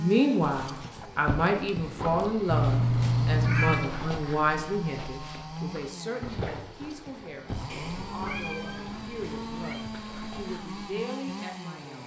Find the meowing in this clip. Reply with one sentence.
The meowing can be heard from 2.5 to 3.9 s and from 7.7 to 9.8 s.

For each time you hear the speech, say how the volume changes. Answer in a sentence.
The speech can be heard from 0.0 to 12.0 s, getting quieter.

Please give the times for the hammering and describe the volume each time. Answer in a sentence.
The hammering can't be heard in this clip.